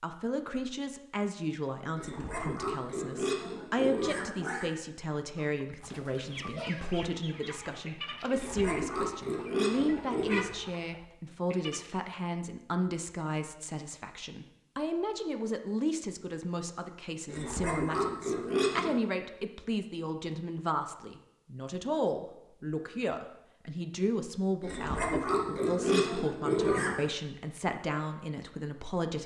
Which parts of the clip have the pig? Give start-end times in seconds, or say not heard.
1.9-4.7, 8.2-10.5, 17.2-19.0, 24.6-27.1.